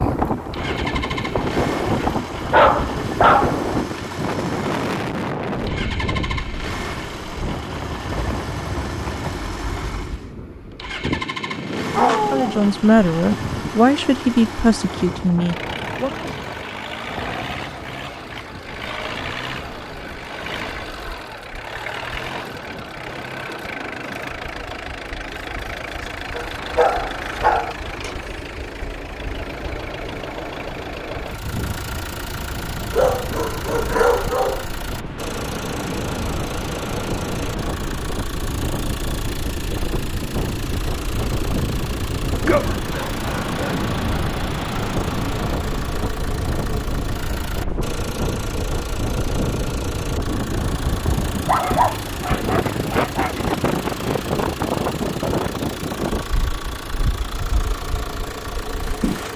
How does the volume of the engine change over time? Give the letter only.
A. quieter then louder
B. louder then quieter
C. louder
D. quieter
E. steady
E.